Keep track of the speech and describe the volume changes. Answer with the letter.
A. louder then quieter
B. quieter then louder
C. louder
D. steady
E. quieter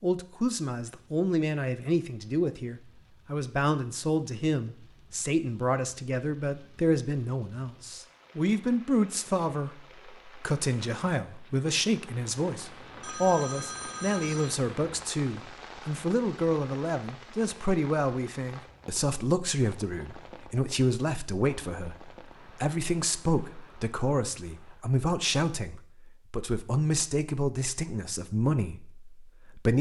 D.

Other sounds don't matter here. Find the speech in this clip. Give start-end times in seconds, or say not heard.
0.0-29.7.